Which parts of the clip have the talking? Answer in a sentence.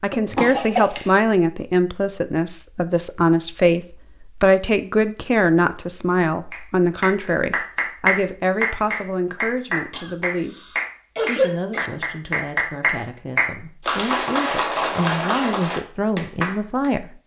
The talking can be heard from 0.0 to 17.1 s.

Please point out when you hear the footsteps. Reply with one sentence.
You can't hear the footsteps here.